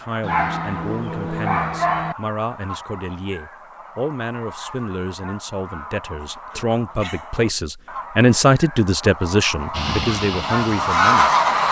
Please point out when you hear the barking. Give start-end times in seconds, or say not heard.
0.2-2.1, 6.5-7.3.